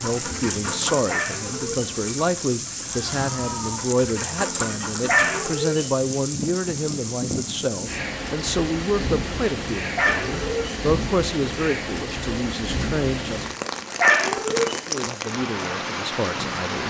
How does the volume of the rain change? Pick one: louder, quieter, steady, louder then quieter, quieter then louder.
steady.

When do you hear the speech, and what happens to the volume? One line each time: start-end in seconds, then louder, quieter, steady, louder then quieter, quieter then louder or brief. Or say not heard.
0.0-13.7 steady
14.8-16.8 brief.